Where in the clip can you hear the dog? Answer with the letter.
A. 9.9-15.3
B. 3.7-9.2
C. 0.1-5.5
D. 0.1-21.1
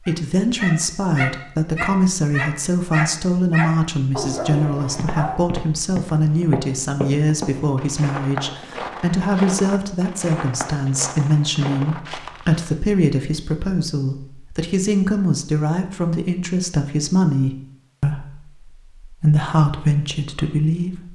C.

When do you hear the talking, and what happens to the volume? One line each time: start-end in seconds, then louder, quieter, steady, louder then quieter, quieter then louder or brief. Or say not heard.
0.1-21.1 steady.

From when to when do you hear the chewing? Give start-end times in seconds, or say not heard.
not heard.